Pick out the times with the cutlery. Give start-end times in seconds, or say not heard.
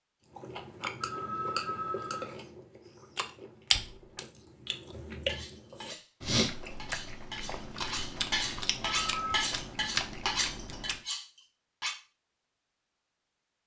5.2-11.9.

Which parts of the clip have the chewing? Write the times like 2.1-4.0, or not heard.
0.3-11.0.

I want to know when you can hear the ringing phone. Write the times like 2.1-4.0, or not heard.
1.0-2.3, 8.8-9.5.